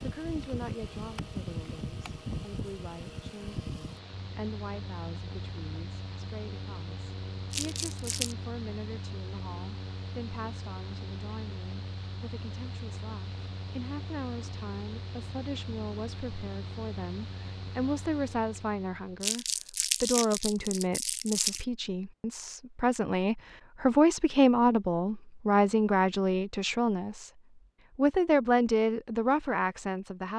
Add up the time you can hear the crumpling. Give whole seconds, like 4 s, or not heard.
3 s.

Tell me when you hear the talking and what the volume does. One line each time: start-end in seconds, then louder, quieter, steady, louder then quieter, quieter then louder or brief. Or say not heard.
0.0-27.3 louder
27.9-30.3 brief.